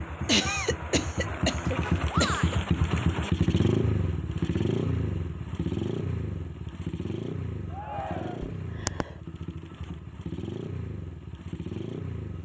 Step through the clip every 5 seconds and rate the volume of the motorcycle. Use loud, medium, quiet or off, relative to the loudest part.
loud, medium, medium.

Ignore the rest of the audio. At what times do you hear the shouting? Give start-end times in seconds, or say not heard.
2.0-2.6, 7.7-8.5.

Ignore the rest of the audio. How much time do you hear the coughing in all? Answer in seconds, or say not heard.
3 s.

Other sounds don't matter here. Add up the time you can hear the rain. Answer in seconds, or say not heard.
not heard.